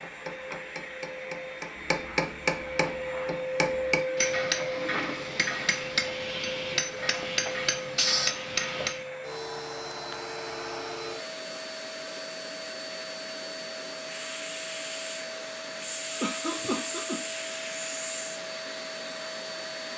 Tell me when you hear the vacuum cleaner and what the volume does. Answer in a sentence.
You can hear the vacuum cleaner from 0.0 to 19.9 s, at a steady volume.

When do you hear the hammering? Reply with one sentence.
The hammering can be heard from 0.0 to 9.1 s.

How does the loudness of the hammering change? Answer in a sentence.
The volume of the hammering goes up.